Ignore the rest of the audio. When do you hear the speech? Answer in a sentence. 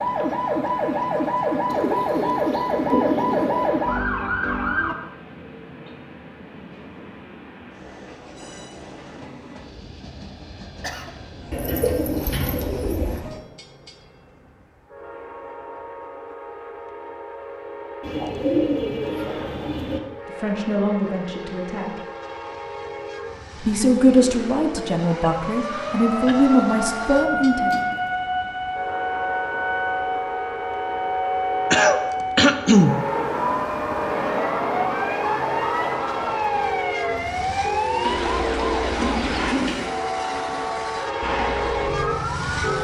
You can hear the speech from 20.4 to 22.0 s and from 23.6 to 27.8 s.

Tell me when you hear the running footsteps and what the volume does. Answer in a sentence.
The running footsteps can't be heard in this clip.